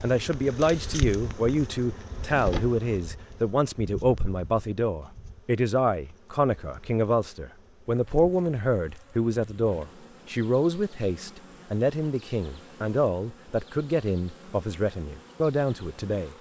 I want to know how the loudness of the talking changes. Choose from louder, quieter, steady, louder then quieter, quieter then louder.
steady.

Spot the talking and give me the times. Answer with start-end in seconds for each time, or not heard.
0.0-16.3.